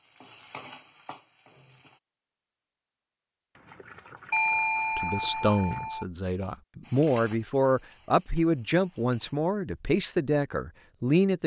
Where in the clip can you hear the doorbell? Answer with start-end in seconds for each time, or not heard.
4.3-6.0.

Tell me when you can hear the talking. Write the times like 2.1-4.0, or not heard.
5.0-11.4.